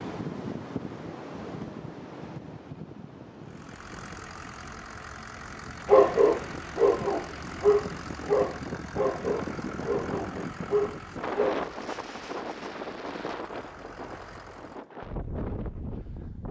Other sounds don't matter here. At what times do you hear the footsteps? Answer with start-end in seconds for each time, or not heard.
not heard.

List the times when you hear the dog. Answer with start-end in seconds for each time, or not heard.
5.8-12.0.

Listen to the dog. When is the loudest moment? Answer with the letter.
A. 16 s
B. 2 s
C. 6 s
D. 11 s
C.